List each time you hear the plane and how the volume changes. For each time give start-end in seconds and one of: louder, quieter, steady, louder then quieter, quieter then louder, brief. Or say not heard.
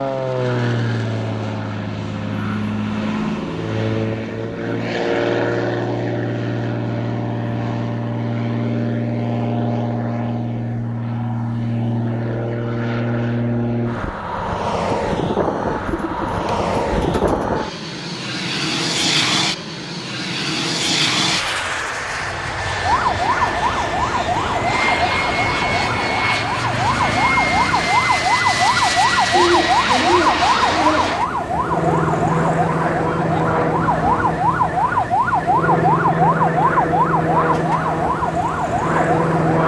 0.0-39.6 steady.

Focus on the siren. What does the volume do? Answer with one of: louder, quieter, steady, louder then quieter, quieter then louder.
steady.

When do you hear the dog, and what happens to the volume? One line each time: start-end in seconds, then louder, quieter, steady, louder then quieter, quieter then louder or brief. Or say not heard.
not heard.